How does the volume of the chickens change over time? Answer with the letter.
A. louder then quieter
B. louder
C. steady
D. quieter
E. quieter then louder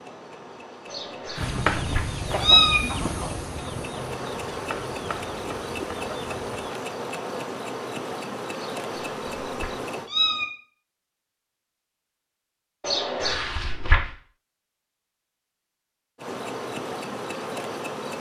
D.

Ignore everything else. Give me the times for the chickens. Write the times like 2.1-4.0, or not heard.
1.4-6.8.